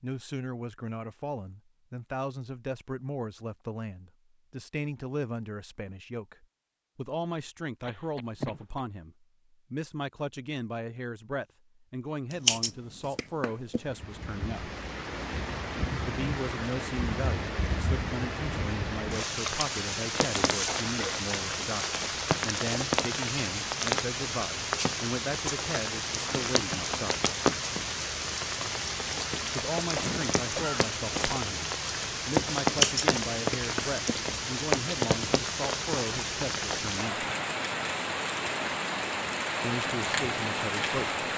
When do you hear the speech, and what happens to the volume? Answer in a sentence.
The speech can be heard from 0.0 to 14.7 s, at a steady volume; from 16.0 to 27.3 s, at a steady volume; from 29.5 to 37.2 s, at a steady volume; and briefly from 39.6 to 41.1 s.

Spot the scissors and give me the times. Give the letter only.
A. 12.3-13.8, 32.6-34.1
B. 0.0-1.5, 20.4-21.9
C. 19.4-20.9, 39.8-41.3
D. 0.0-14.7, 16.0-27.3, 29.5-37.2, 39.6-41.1
A.